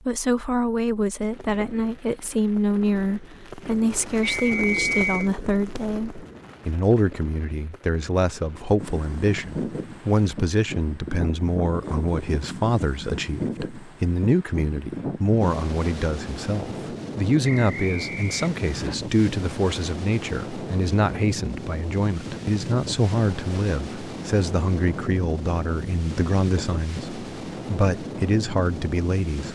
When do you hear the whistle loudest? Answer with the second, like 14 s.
5 s.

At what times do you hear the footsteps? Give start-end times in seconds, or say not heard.
not heard.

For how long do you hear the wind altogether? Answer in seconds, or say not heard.
21 s.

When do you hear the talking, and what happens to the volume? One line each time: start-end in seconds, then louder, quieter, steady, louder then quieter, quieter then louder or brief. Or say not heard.
0.1-29.5 steady.